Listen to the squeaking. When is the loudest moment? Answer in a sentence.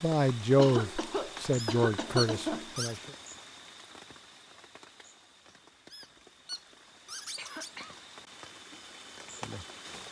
The loudest moment of the squeaking is at 2 seconds.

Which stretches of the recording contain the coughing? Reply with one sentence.
You can hear the coughing from 0.6 to 2.8 s and from 7.3 to 8.0 s.